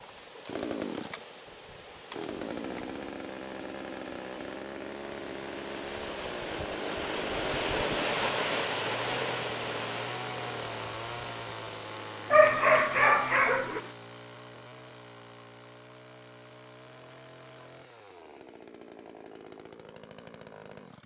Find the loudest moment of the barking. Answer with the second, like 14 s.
13 s.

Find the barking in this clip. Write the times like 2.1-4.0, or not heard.
12.3-13.8.